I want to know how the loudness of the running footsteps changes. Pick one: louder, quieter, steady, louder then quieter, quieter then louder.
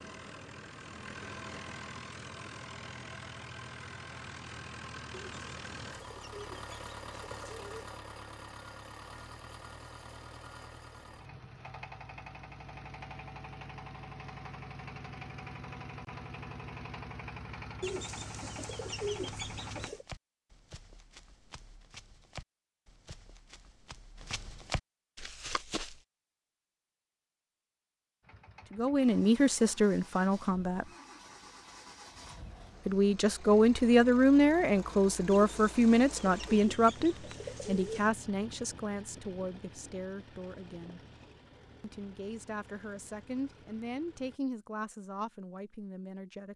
louder.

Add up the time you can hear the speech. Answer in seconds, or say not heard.
15 s.